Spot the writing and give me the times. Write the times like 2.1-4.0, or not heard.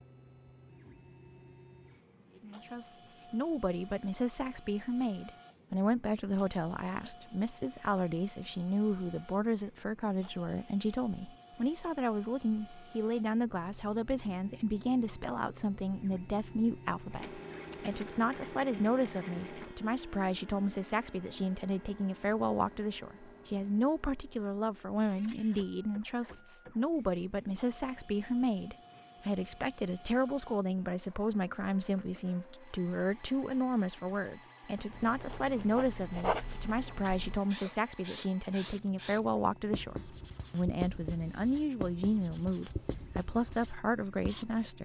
34.9-44.7.